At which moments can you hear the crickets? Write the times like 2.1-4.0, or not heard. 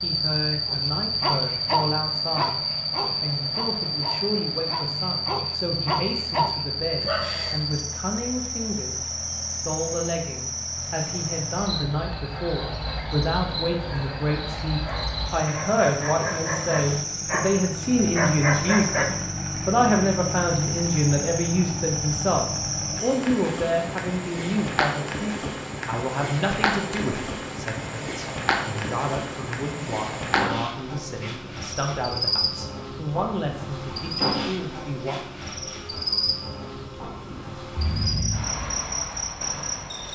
0.0-40.0.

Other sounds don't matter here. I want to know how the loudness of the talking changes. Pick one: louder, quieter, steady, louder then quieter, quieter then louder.
louder then quieter.